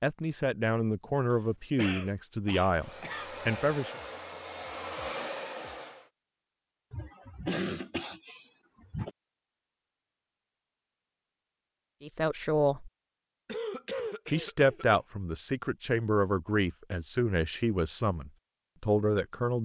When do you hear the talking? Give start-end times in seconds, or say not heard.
0.0-4.0, 12.0-12.9, 14.2-19.6.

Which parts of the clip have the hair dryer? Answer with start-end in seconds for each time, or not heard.
2.6-6.1.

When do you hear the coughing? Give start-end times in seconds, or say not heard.
1.8-3.3, 6.9-9.1, 13.4-15.0.